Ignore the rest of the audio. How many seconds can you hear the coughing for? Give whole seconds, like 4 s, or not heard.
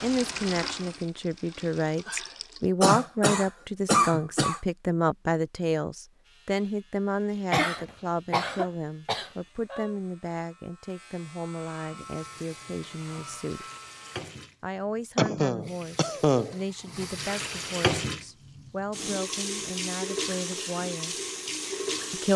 6 s.